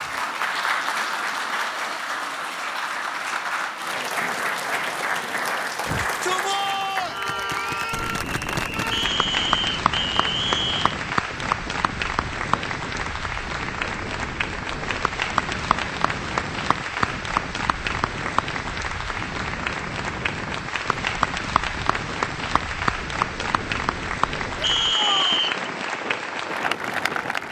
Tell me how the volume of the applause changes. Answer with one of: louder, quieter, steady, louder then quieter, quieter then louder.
steady.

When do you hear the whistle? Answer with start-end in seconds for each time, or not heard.
8.9-11.0, 24.6-25.6.